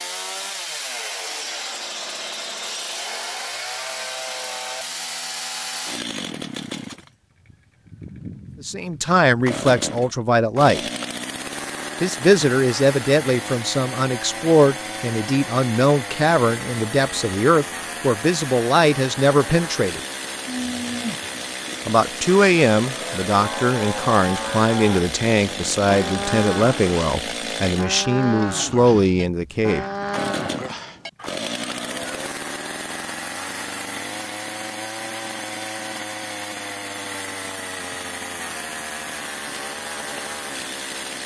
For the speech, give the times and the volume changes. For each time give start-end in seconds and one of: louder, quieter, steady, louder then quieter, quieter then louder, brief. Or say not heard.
8.6-10.8 brief
12.0-20.0 steady
21.9-29.9 steady.